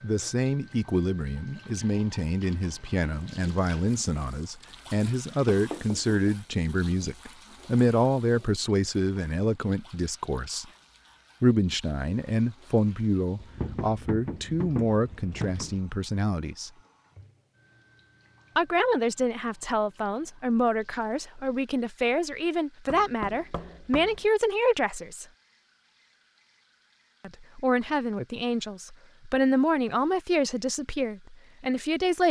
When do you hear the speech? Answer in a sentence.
The speech can be heard from 0.0 to 10.7 s, from 11.4 to 16.7 s, from 18.6 to 25.2 s and from 27.2 to 32.2 s.